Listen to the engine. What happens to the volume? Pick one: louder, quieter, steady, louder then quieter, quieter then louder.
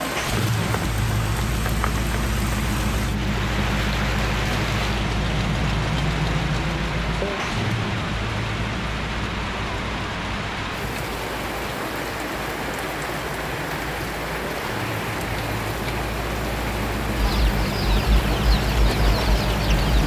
quieter then louder.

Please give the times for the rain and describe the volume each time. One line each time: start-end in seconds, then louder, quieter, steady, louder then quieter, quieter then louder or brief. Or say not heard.
0.0-20.0 steady.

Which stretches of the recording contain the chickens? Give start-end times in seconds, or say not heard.
17.1-20.0.